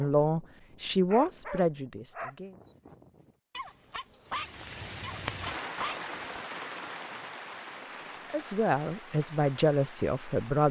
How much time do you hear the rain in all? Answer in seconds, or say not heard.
6 s.